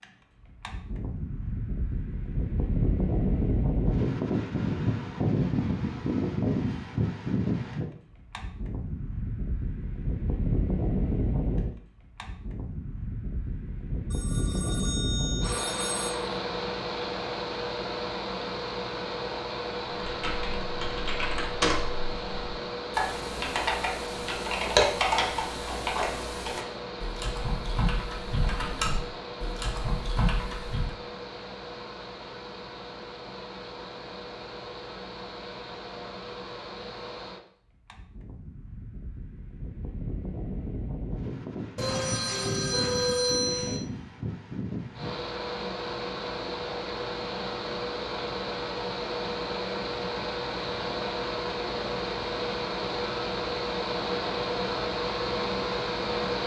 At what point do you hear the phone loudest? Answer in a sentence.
The loudest moment of the phone is at 43 seconds.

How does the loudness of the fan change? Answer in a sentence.
The loudness of the fan goes down, then up.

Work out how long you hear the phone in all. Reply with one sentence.
You can hear the phone for 4 seconds altogether.